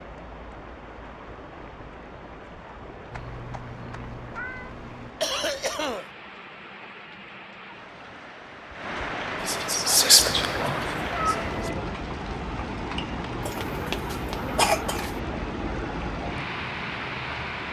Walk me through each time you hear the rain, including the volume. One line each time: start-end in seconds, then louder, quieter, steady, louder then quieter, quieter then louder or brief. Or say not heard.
0.0-17.6 louder.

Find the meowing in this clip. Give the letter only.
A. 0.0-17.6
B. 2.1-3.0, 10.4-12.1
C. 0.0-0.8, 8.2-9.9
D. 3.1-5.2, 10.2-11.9
D.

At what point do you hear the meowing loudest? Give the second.
11 s.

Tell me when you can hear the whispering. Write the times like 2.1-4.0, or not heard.
9.3-11.7.